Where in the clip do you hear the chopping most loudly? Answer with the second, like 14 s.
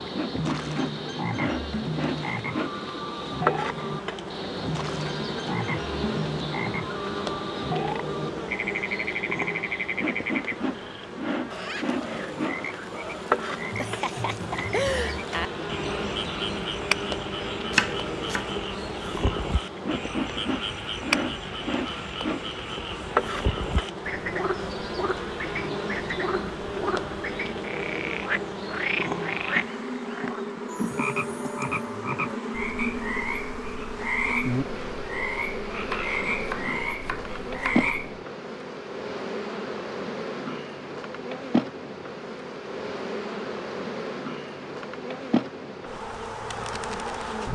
18 s.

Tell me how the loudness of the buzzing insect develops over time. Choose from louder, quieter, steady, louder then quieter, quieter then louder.
steady.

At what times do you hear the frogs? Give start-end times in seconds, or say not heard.
0.0-38.2.